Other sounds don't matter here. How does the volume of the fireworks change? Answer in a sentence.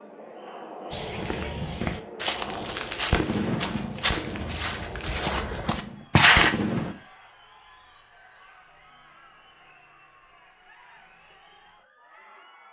The volume of the fireworks goes down, then up.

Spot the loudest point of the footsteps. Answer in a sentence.
The volume of the footsteps peaks at 6 seconds.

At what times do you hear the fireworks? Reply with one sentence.
The fireworks can be heard from 2.5 to 7.0 s.